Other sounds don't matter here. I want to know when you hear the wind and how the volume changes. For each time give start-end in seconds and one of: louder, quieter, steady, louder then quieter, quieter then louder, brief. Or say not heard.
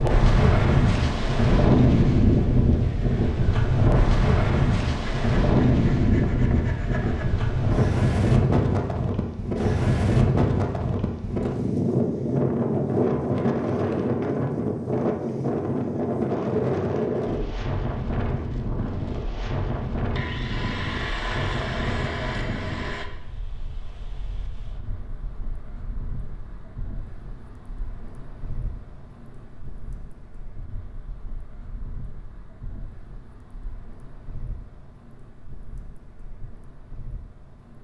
0.0-37.7 quieter.